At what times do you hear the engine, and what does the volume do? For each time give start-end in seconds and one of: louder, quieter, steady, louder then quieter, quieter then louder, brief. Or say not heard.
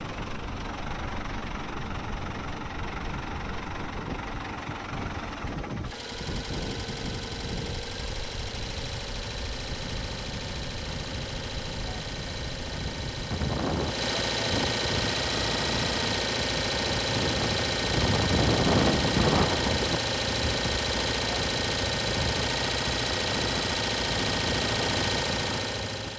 0.0-26.1 louder.